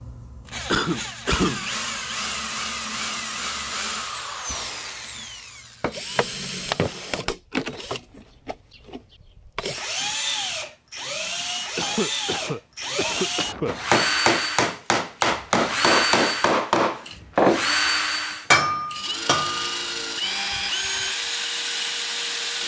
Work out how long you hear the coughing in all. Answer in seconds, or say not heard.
3 s.